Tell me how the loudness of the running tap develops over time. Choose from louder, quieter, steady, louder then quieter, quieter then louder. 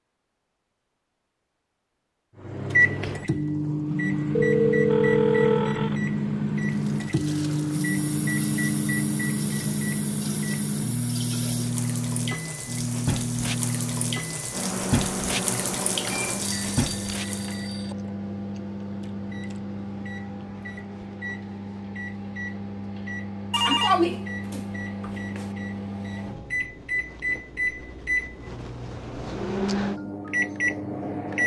louder.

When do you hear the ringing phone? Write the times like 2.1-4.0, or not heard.
4.3-6.0, 16.4-17.9, 23.5-25.4.